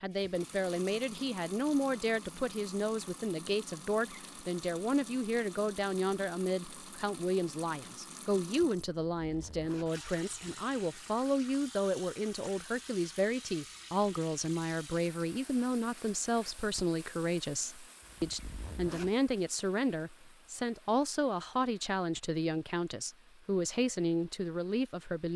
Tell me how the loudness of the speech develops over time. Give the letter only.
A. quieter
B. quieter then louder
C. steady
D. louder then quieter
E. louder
C.